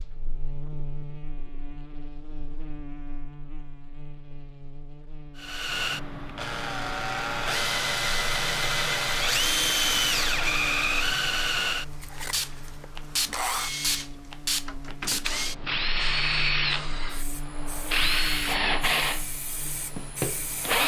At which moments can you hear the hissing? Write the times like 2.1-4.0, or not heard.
12.2-20.8.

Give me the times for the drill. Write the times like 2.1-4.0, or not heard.
5.3-20.8.